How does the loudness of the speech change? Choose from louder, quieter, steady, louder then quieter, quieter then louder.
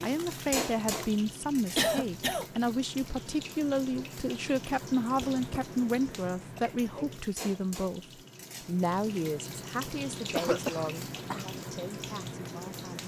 quieter.